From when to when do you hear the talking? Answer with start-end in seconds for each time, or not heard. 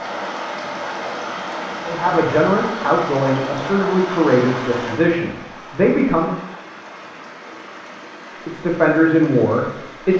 1.9-6.3, 8.4-10.1.